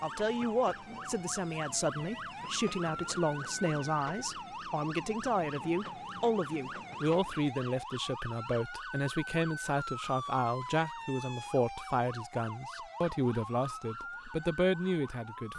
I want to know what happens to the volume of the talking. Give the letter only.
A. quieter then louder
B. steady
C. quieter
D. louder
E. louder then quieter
B.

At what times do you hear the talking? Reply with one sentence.
You can hear the talking from 0.0 to 15.5 s.